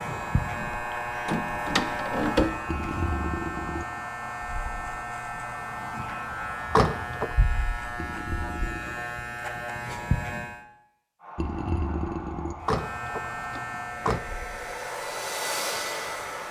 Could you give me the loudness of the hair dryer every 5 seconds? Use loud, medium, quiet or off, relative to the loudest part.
medium, medium, medium, loud.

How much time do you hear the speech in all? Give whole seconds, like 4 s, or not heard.
not heard.